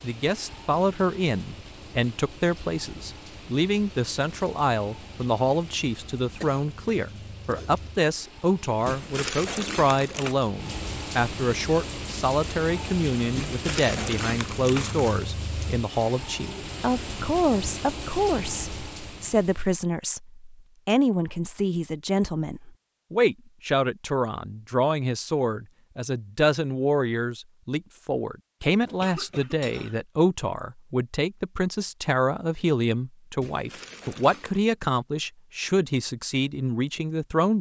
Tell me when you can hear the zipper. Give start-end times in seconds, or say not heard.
not heard.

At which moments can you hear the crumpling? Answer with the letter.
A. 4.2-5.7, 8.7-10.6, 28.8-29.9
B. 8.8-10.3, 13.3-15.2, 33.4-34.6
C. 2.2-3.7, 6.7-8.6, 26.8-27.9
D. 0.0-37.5
B.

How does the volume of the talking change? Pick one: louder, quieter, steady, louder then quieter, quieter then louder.
steady.